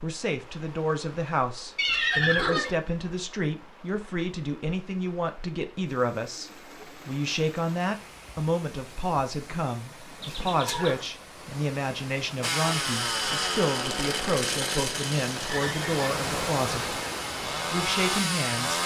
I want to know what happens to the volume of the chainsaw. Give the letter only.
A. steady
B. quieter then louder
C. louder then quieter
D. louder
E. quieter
B.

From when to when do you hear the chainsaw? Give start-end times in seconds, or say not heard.
12.4-18.8.